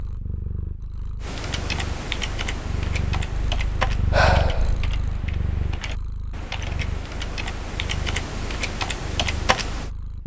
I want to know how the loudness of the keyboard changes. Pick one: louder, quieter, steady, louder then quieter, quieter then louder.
quieter then louder.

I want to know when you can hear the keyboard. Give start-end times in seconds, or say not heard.
1.2-9.9.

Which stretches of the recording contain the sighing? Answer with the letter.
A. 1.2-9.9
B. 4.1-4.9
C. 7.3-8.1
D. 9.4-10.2
B.